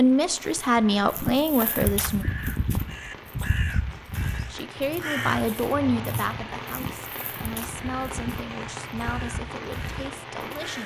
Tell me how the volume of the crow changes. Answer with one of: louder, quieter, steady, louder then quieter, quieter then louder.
quieter.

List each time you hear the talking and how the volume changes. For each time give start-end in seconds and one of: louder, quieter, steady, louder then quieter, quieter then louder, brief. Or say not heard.
0.0-2.2 brief
4.5-10.8 quieter.